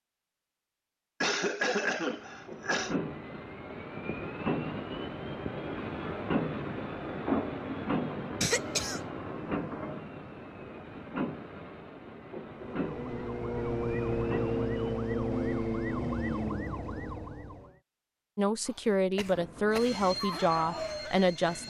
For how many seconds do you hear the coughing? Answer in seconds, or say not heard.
4 s.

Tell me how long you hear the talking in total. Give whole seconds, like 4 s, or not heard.
3 s.